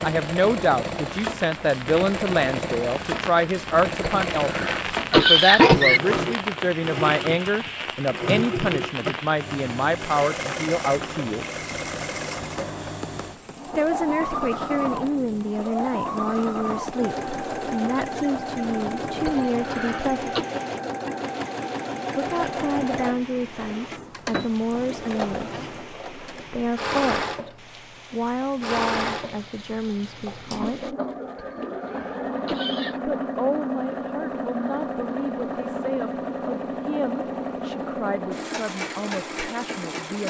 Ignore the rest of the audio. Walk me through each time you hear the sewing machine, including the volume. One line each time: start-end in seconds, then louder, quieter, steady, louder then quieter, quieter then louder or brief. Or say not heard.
0.0-40.2 steady.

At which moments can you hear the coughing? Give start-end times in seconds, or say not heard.
4.0-6.0, 19.2-20.4, 31.4-33.0.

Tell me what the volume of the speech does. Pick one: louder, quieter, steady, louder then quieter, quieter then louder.
quieter.